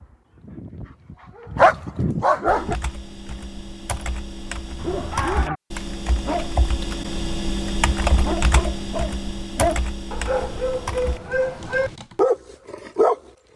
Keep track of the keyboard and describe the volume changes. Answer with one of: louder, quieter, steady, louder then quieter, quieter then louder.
louder then quieter.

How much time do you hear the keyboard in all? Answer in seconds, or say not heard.
10 s.